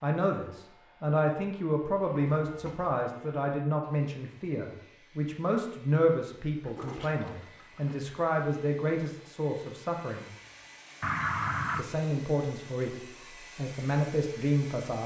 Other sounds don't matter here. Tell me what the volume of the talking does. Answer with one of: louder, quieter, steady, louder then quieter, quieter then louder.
steady.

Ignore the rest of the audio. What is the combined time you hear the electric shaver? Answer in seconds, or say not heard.
not heard.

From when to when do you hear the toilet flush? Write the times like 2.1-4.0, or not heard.
2.1-2.9, 6.6-8.0, 11.0-11.8.